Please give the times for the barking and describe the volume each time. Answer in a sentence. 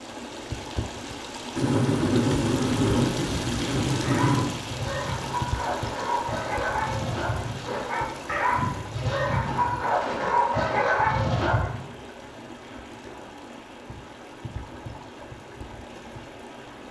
You can hear the barking from 4.0 to 11.8 s, getting louder.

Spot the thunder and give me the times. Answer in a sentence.
The thunder can be heard from 1.6 to 4.5 s.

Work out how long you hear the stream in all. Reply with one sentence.
The stream can be heard for 17 seconds in total.